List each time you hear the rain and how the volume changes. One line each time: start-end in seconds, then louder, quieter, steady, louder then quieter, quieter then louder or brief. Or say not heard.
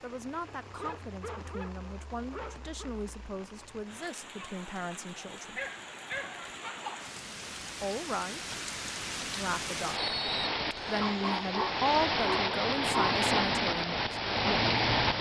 0.0-15.1 louder.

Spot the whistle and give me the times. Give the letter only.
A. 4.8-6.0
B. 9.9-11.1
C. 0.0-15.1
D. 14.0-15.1
B.